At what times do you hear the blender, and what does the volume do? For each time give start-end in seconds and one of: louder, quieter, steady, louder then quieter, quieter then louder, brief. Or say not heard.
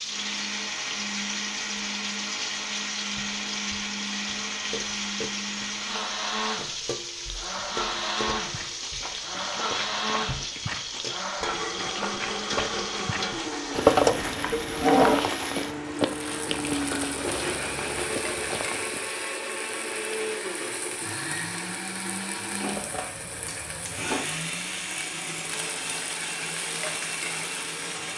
0.0-28.1 steady.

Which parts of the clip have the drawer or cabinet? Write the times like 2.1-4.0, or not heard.
13.8-15.2.